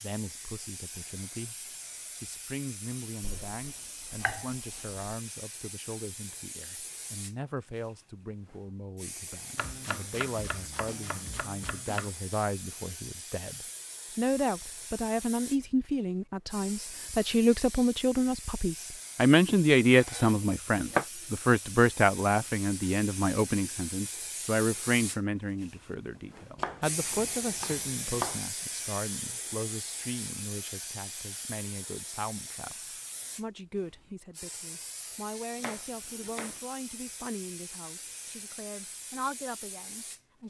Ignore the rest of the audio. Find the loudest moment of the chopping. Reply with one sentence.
The loudest moment of the chopping is at 21 seconds.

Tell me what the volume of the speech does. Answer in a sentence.
The volume of the speech goes up, then down.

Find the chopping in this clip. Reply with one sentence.
The chopping can be heard from 3.2 to 5.0 s, from 9.6 to 12.1 s, from 19.4 to 21.1 s, from 26.6 to 28.4 s and from 35.5 to 36.6 s.